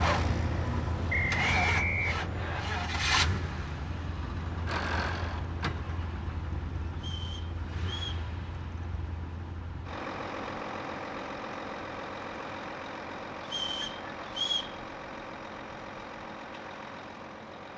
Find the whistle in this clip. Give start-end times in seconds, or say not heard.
1.1-2.6, 7.0-8.2, 13.4-14.8.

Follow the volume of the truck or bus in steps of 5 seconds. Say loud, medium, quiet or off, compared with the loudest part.
loud, medium, medium, medium.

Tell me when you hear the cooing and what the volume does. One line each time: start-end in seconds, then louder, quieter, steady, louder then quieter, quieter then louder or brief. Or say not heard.
not heard.